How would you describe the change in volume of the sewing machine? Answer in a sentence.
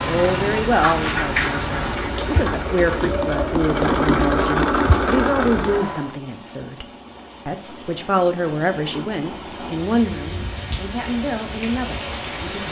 The volume of the sewing machine goes up.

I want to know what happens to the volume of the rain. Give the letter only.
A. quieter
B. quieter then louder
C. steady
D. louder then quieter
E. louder
B.